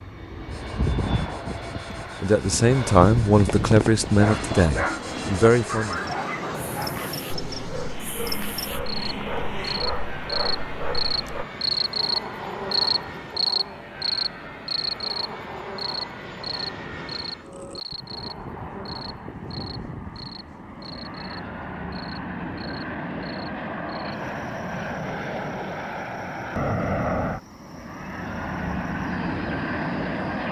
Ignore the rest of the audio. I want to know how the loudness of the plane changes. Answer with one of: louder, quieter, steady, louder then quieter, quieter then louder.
quieter then louder.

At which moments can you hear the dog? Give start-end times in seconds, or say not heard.
3.0-11.4.